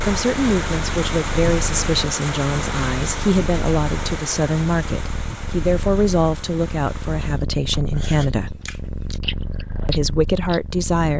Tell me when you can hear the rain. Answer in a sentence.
You can hear the rain from 0.0 to 7.4 s.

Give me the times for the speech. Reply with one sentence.
The speech can be heard from 0.0 to 8.6 s and from 9.8 to 11.1 s.